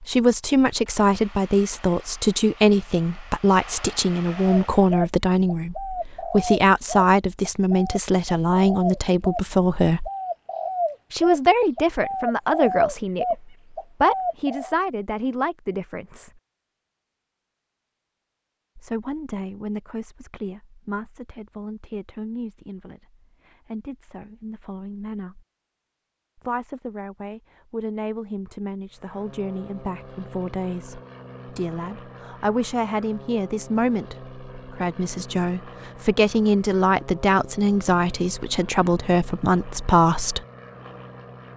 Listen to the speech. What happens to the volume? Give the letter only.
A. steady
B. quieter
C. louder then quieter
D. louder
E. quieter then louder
E.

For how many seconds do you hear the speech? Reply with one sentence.
You can hear the speech for 36 seconds altogether.